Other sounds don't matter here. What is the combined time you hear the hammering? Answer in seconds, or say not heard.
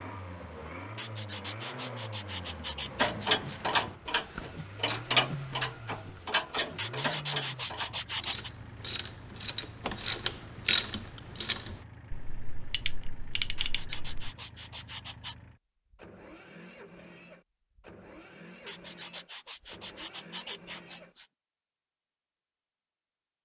not heard.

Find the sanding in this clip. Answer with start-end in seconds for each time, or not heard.
0.9-3.6, 6.8-8.5, 13.6-15.3, 18.6-21.2.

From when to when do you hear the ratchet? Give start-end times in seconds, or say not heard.
3.0-14.3.